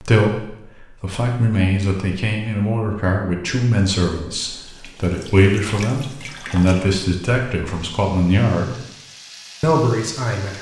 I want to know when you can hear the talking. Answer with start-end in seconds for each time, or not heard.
0.0-8.8, 9.6-10.5.